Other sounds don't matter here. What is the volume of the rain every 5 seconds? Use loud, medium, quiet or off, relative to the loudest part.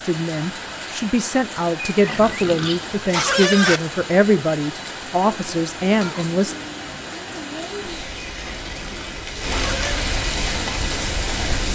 medium, medium, loud.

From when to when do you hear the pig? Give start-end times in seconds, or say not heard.
1.9-3.8, 8.4-10.1.